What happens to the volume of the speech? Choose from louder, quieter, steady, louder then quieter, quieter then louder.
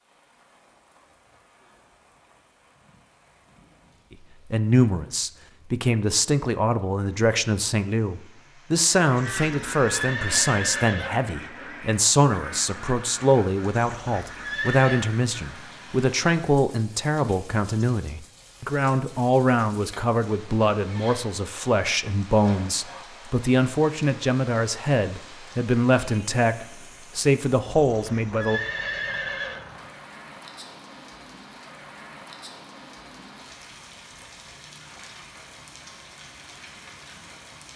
steady.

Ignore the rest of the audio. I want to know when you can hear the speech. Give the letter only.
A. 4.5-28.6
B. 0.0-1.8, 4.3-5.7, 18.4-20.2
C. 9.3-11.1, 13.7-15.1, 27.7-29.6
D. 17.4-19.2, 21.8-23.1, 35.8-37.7
A.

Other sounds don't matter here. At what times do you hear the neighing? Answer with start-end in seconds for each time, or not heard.
9.3-11.1, 13.7-15.1, 27.7-29.6.